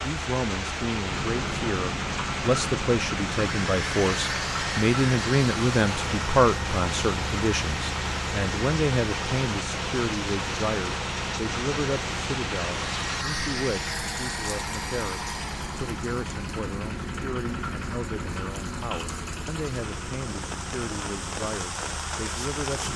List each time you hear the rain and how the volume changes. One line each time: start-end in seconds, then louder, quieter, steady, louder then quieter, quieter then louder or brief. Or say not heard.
0.0-22.9 quieter then louder.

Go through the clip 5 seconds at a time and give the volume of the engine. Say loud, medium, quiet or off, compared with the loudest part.
loud, loud, loud, loud, medium.